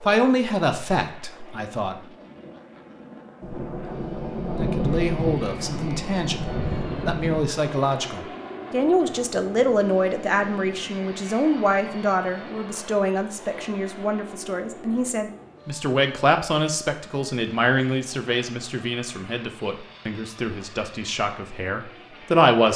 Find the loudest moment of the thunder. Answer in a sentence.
The volume of the thunder peaks at 5 seconds.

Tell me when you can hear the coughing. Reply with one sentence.
You can't hear the coughing here.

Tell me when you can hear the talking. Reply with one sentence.
The talking can be heard from 0.0 to 1.9 s and from 4.5 to 22.7 s.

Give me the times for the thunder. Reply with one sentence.
The thunder can be heard from 3.4 to 7.5 s.